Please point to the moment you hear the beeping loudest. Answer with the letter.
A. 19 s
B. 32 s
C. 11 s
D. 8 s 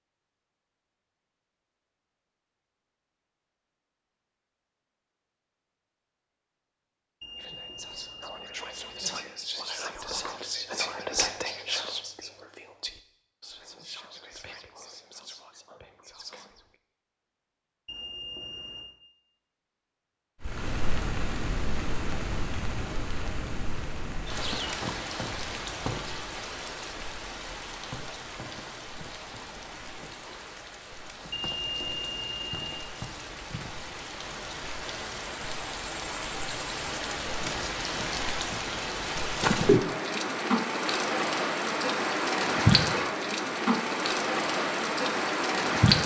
B.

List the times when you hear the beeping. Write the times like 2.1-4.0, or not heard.
7.2-9.2, 17.9-18.9, 31.3-32.9.